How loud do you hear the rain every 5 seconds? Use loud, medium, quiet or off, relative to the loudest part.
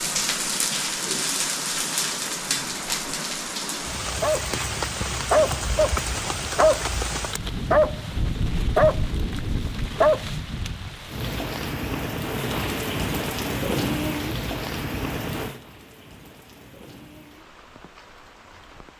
loud, loud, loud, medium.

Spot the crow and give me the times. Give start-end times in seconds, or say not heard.
not heard.